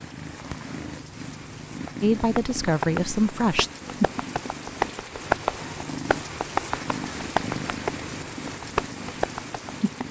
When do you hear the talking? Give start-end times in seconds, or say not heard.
2.0-3.7.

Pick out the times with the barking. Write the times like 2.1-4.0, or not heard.
not heard.